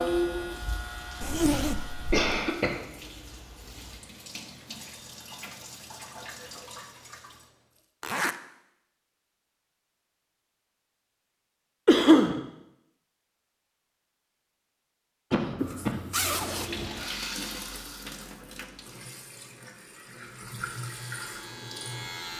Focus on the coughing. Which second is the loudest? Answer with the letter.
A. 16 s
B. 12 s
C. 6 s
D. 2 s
B.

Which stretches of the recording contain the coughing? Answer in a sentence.
The coughing can be heard from 1.3 to 2.8 s, from 11.8 to 12.4 s and from 15.3 to 16.1 s.